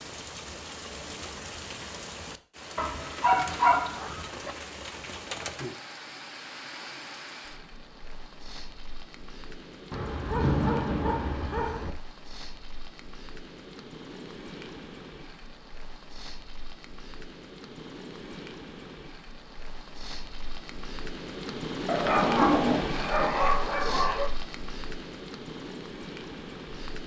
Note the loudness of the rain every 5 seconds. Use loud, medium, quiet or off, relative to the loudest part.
medium, medium, medium, medium, loud, medium.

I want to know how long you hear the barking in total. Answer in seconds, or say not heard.
6 s.